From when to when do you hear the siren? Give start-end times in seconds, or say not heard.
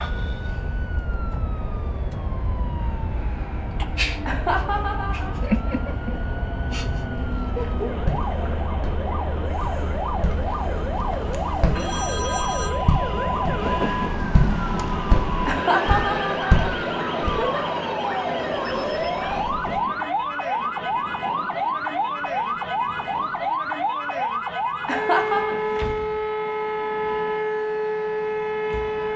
0.0-29.1.